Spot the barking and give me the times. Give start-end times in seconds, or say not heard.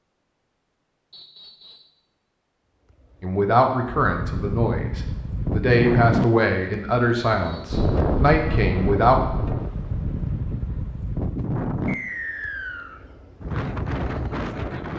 not heard.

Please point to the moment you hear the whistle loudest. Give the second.
12 s.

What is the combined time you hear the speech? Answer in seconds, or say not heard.
6 s.